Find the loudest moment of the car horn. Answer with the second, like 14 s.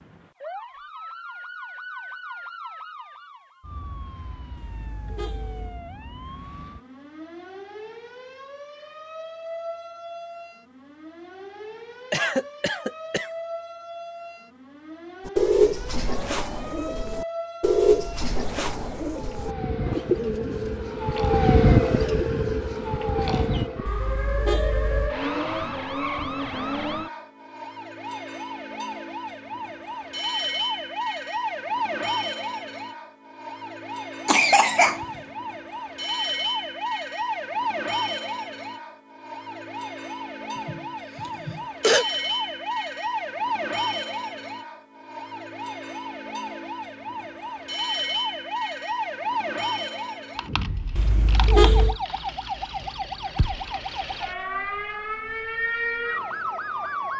52 s.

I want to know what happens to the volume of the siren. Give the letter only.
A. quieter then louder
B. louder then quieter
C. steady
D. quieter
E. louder
E.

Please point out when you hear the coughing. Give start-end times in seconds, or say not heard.
12.1-13.3, 34.2-35.0, 40.6-42.0.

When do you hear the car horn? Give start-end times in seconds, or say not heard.
4.5-5.8, 23.9-25.1, 51.0-52.0.